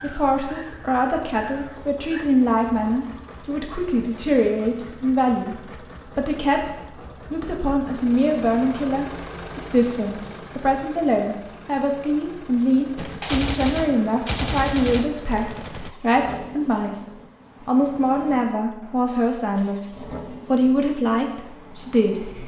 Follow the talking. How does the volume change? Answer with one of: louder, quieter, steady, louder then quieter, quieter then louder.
steady.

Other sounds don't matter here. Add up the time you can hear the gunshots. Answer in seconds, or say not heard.
3 s.